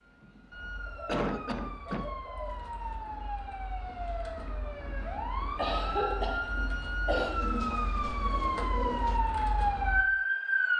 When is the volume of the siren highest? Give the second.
10 s.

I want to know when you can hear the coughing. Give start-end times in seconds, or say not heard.
0.2-2.1, 5.5-7.4.